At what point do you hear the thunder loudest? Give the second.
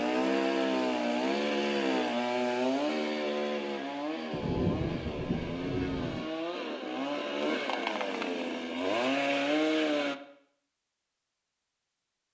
5 s.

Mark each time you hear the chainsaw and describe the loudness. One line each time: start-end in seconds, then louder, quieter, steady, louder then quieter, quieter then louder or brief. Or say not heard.
0.0-10.2 quieter then louder.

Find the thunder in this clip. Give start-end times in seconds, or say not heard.
4.3-6.2.